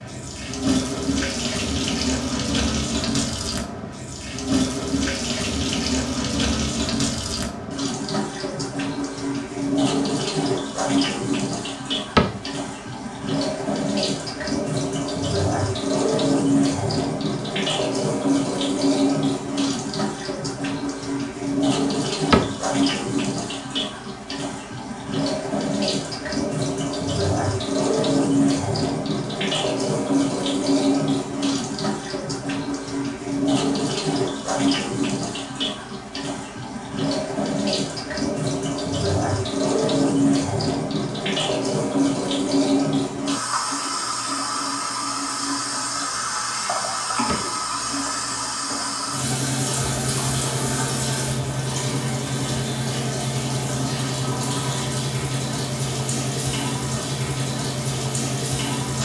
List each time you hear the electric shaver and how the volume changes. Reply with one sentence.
You can't hear the electric shaver here.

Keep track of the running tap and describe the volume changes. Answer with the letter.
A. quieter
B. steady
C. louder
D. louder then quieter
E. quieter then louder
B.